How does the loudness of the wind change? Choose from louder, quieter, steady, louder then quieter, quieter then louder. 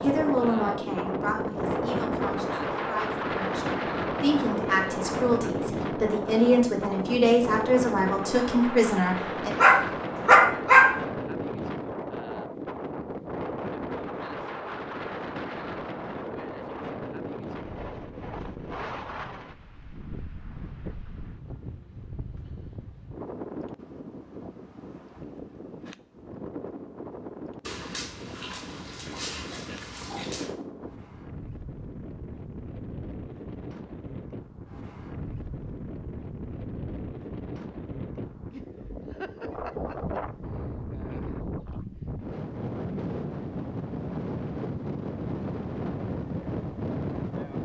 quieter then louder.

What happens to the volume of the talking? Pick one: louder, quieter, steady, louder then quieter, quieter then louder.
quieter then louder.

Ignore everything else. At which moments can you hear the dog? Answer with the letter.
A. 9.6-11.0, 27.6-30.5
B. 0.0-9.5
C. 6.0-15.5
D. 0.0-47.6
A.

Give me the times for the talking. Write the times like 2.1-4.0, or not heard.
0.0-9.5.